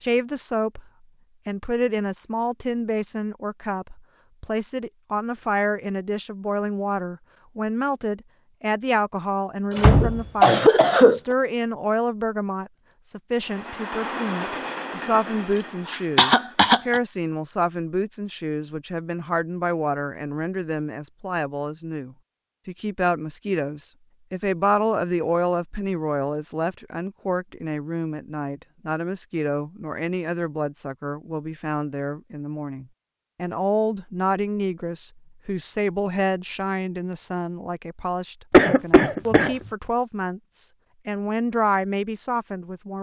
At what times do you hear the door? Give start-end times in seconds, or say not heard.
9.8-10.7.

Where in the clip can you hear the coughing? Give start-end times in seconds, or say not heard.
9.7-11.2, 15.6-17.0, 38.5-39.5.